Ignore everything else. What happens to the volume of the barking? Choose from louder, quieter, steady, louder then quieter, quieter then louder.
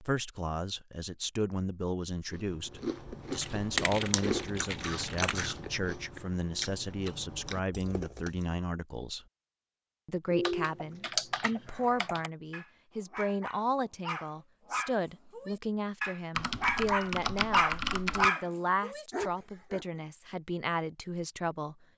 louder.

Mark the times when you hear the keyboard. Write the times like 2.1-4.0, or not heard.
3.4-5.4, 10.3-12.3, 16.4-18.3.